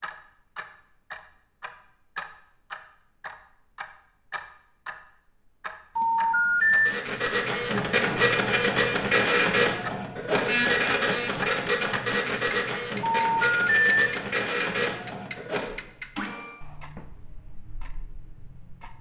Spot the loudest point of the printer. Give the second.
9 s.